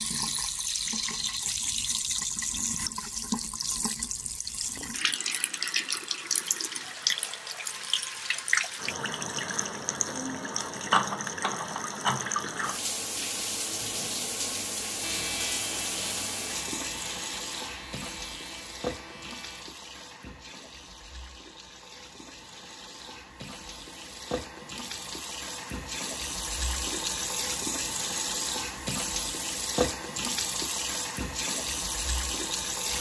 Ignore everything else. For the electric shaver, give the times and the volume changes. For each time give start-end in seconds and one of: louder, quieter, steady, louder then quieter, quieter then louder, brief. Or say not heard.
15.0-19.7 quieter.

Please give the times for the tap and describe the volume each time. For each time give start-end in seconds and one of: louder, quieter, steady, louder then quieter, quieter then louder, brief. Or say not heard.
0.0-32.9 quieter then louder.